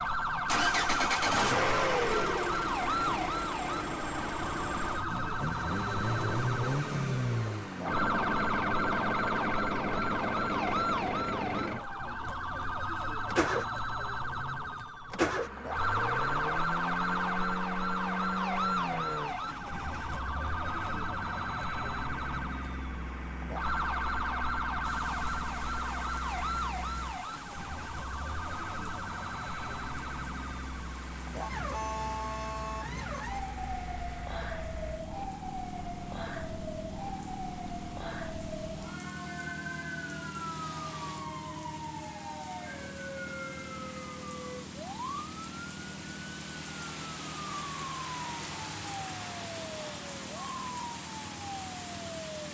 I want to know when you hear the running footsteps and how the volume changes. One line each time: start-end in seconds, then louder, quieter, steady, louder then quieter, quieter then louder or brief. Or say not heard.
not heard.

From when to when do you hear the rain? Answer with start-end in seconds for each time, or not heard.
24.8-52.4.